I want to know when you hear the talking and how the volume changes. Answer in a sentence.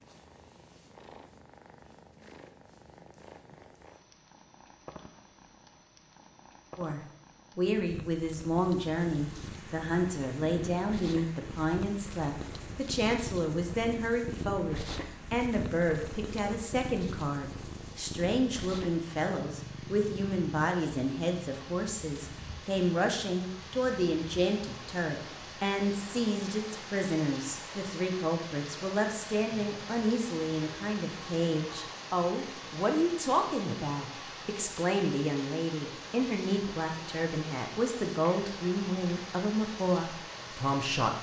You can hear the talking from 6.8 to 41.1 s, at a steady volume.